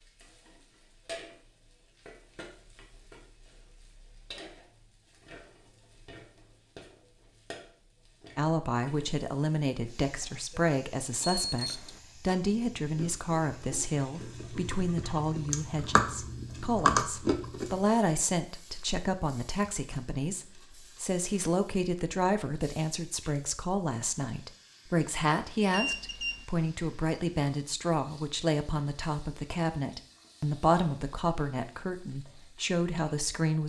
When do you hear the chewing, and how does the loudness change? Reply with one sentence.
The chewing can be heard from 12.4 to 17.8 s, getting louder.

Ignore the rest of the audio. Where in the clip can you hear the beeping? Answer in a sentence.
You can hear the beeping from 11.2 to 12.0 s and from 25.7 to 26.4 s.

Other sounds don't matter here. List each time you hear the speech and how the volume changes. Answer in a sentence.
The speech can be heard from 8.3 to 33.6 s, at a steady volume.